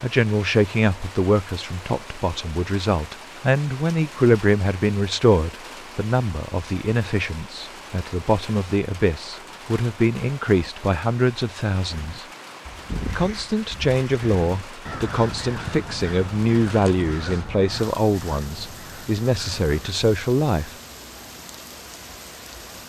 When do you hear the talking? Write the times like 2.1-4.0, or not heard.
0.0-12.2, 13.1-20.7.